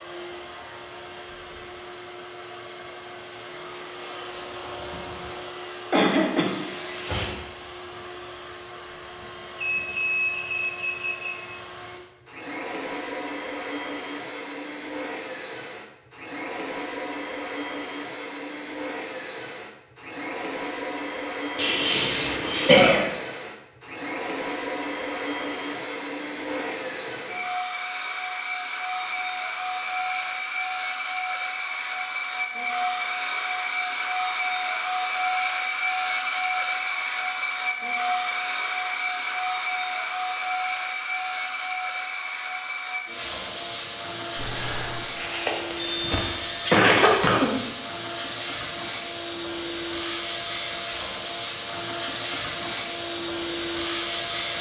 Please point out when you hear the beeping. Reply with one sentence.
The beeping can be heard from 9.6 to 11.3 s, from 28.9 to 30.7 s and from 44.4 to 46.8 s.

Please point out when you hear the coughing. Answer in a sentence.
You can hear the coughing from 5.9 to 6.6 s, from 21.6 to 23.0 s and from 45.1 to 47.5 s.